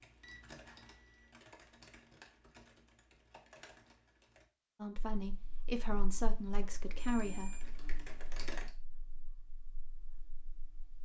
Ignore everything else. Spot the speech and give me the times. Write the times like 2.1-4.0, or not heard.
4.8-7.6.